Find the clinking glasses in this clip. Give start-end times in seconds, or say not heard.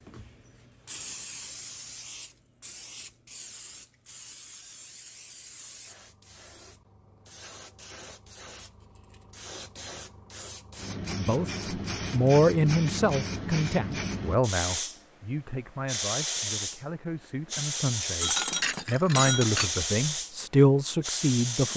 18.2-19.7.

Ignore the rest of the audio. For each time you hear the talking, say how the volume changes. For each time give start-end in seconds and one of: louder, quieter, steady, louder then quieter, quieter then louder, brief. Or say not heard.
11.2-21.7 quieter then louder.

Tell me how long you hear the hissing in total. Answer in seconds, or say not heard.
22 s.